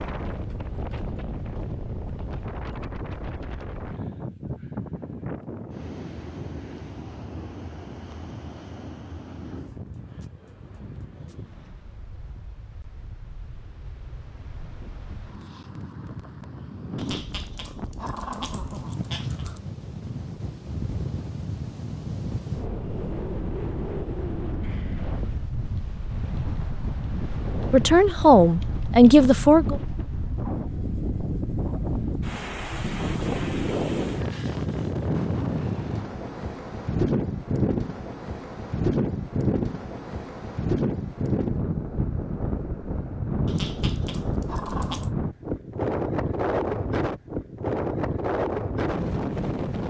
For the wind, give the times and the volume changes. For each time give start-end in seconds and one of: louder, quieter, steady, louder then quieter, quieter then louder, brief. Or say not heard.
0.0-49.8 louder.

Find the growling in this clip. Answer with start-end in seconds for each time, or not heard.
16.9-19.6, 43.5-45.1.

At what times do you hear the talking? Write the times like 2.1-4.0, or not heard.
27.7-29.8.